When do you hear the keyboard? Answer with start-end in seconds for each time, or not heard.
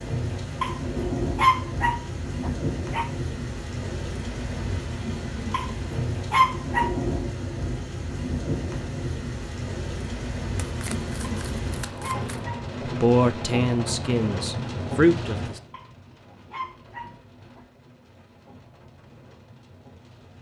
not heard.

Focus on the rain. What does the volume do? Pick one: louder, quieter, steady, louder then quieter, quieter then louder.
quieter.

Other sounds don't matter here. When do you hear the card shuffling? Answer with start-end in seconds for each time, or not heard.
10.6-12.5.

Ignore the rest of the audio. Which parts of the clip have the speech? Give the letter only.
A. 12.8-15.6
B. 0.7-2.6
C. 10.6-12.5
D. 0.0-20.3
A.